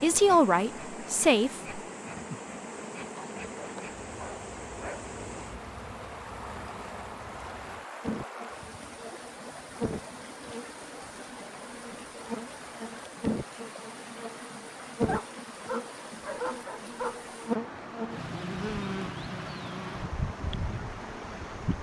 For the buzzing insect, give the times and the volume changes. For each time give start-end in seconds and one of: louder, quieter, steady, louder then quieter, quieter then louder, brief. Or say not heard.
0.0-21.7 louder.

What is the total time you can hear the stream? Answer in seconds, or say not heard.
22 s.